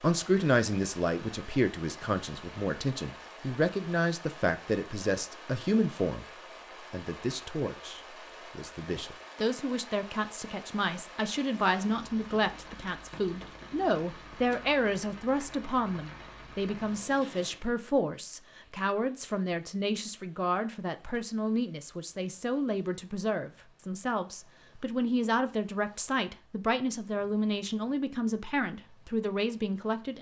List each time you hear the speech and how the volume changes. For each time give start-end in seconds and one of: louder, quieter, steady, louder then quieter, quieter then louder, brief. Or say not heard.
0.0-30.1 steady.